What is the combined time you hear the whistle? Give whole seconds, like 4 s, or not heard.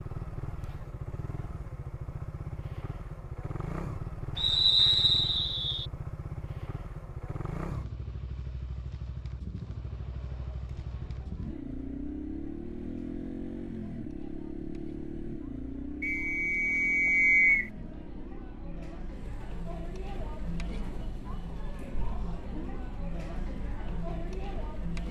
3 s.